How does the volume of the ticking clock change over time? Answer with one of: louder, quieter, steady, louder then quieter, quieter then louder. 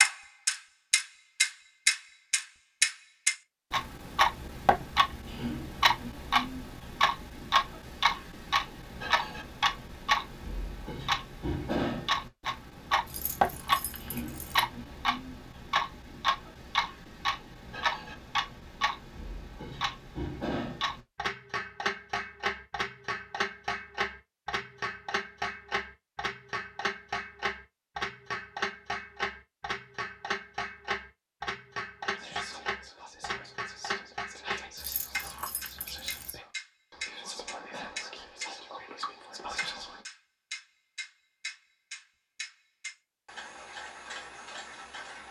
quieter.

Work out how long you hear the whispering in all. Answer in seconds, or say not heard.
8 s.